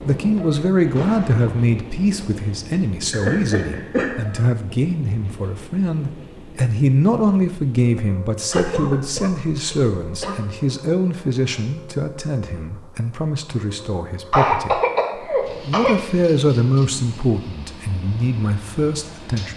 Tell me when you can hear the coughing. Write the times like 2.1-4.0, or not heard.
3.1-4.1, 8.5-10.3, 14.3-15.9.